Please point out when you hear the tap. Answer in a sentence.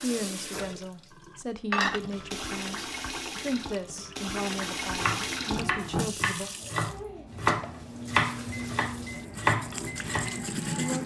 You can hear the tap from 0.0 to 11.0 s.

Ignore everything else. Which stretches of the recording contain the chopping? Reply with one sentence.
You can hear the chopping from 4.9 to 10.3 s.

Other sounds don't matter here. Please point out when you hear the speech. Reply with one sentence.
You can hear the speech from 0.0 to 6.5 s and from 10.6 to 11.0 s.